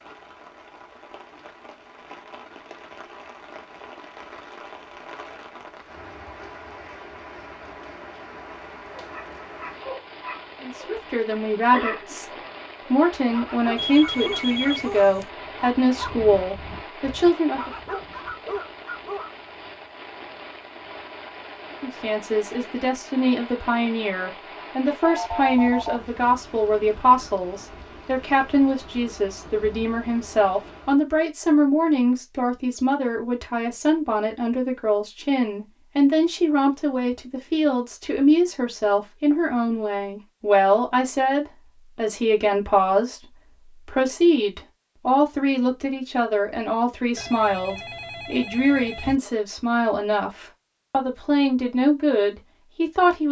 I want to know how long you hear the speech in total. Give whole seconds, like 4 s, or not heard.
38 s.